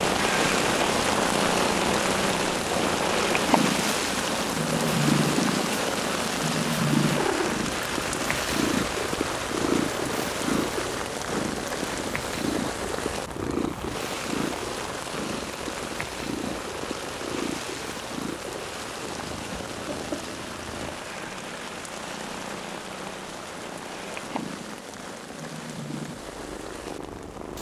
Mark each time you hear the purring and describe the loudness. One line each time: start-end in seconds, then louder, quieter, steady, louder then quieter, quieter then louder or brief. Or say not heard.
0.0-27.5 quieter.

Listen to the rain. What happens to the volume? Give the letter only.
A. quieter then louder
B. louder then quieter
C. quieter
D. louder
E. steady
C.